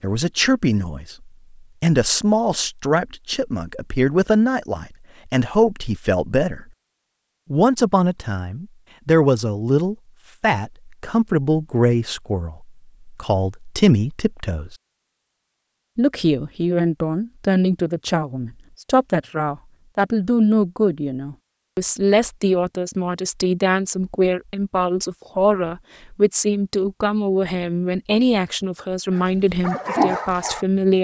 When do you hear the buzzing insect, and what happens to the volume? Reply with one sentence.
You can't hear the buzzing insect here.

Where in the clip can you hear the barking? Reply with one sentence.
You can hear the barking from 29.1 to 31.0 s.